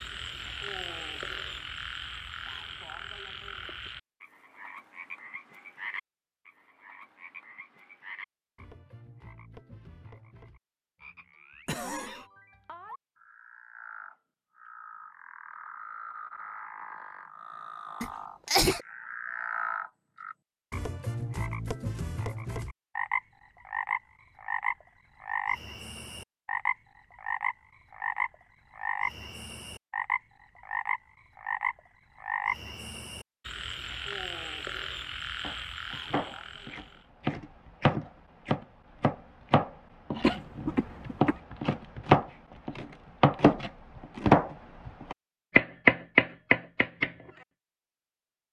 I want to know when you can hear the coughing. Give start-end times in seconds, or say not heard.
11.7-12.2, 18.0-18.8, 40.2-41.4.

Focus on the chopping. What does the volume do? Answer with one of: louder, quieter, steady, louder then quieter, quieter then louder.
louder.